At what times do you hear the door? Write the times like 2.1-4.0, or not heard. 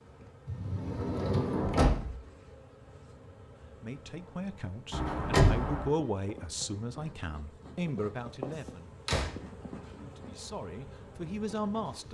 0.5-2.1, 4.9-5.9, 9.1-9.9.